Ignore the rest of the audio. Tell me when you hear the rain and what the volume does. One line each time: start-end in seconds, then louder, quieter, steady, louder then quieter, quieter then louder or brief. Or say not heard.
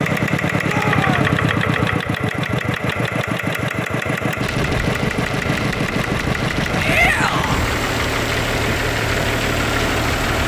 4.4-10.4 steady.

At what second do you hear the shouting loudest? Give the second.
7 s.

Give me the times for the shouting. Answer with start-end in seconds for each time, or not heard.
0.6-1.2, 6.8-7.7.